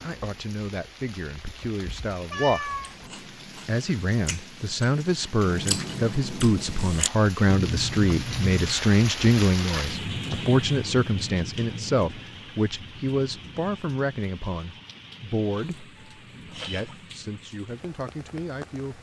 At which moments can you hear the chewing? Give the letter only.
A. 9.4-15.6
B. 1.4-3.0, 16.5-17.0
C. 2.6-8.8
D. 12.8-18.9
C.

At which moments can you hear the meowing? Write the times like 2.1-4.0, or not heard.
1.4-3.0, 16.5-17.0.